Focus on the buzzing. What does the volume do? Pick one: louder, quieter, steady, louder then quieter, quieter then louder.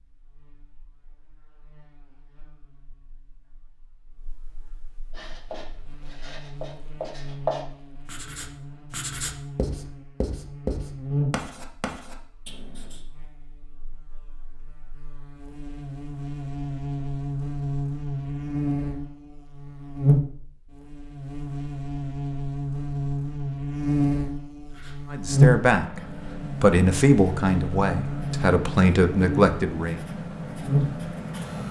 louder.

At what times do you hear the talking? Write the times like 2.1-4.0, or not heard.
25.1-30.0.